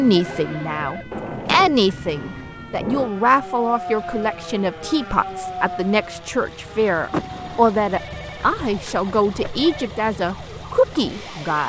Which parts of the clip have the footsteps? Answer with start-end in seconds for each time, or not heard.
not heard.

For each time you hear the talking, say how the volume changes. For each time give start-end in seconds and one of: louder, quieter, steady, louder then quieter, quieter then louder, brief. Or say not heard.
0.0-11.6 steady.